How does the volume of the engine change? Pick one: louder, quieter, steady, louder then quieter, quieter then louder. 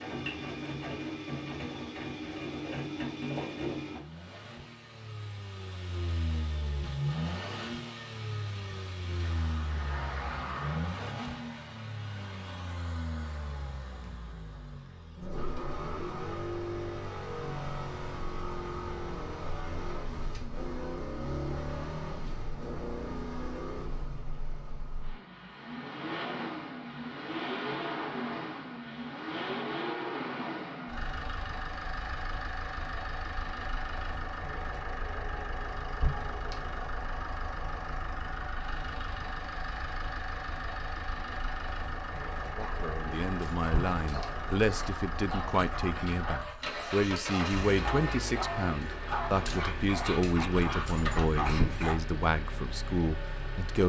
steady.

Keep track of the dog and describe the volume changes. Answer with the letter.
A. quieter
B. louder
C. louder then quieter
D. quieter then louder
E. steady
B.